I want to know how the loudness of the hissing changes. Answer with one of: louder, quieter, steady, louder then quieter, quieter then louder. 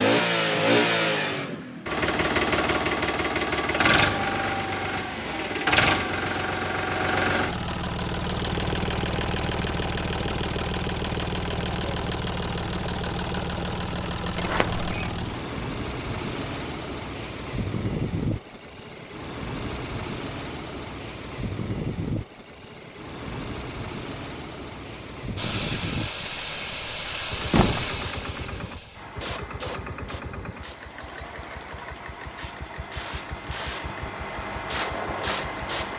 quieter then louder.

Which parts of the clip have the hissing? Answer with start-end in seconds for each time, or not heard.
25.4-35.9.